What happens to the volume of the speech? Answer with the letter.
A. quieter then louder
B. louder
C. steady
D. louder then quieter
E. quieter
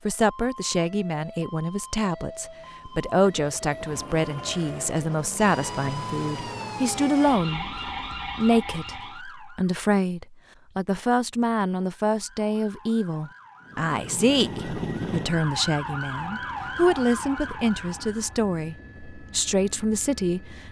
C.